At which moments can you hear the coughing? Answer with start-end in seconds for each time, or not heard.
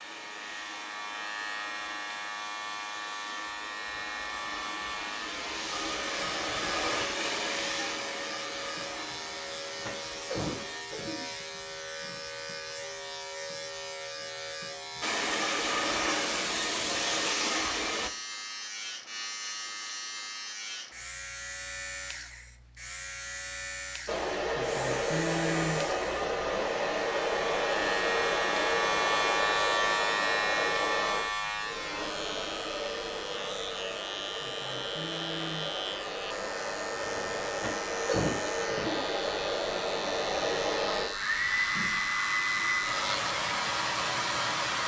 9.8-11.2, 37.5-39.0.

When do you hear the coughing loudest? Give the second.
38 s.